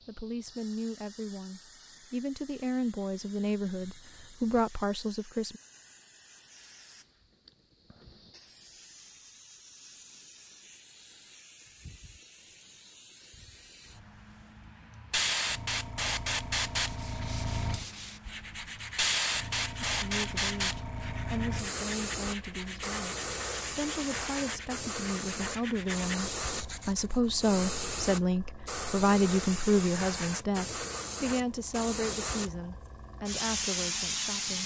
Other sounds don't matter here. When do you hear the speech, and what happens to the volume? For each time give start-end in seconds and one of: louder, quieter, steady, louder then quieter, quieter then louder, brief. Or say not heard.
0.1-5.6 louder
19.8-34.6 louder then quieter.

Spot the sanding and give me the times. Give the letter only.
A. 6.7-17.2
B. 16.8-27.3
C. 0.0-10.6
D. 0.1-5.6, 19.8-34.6
B.